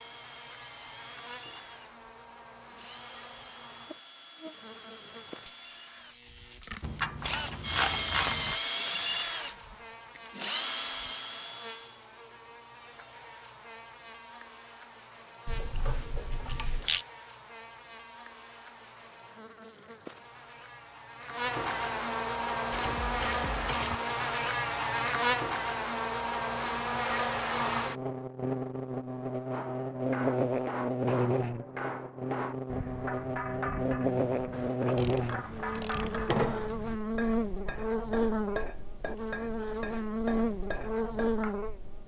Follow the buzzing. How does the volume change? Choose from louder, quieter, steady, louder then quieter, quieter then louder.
louder.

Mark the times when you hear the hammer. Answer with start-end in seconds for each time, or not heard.
29.5-41.5.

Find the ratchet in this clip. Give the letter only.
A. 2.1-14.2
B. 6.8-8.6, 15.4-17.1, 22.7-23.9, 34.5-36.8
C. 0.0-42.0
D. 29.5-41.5
B.